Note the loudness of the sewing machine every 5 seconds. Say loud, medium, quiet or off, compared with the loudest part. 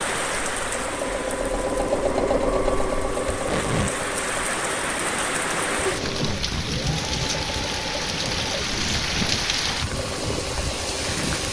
loud, medium, medium.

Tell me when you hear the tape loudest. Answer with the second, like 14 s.
4 s.